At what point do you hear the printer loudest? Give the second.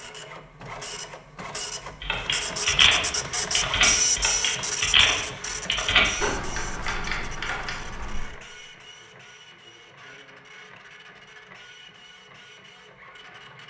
4 s.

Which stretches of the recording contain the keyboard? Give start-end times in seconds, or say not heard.
2.0-8.3.